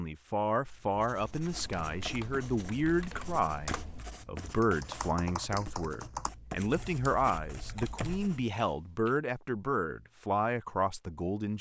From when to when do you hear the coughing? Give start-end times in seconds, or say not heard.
not heard.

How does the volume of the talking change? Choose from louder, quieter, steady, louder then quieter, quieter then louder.
steady.